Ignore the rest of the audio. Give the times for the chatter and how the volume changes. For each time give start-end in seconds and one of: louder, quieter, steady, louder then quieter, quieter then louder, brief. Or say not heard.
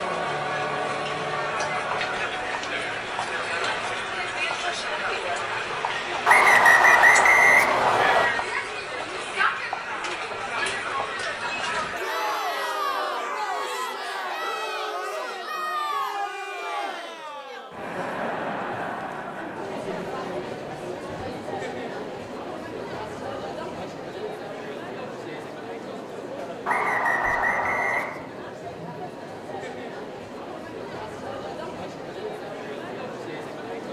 0.0-33.8 quieter.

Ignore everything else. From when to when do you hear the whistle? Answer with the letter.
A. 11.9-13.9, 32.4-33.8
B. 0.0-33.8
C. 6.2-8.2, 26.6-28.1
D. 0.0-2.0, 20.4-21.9
C.